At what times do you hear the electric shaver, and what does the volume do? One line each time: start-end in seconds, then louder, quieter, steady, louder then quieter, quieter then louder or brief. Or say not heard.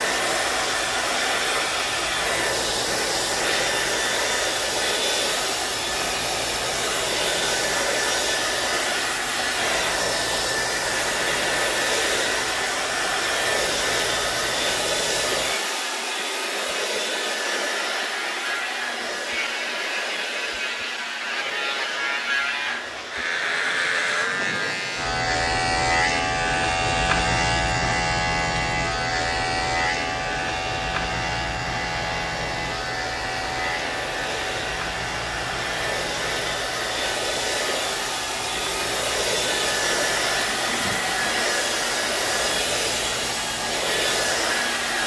0.0-45.0 louder then quieter.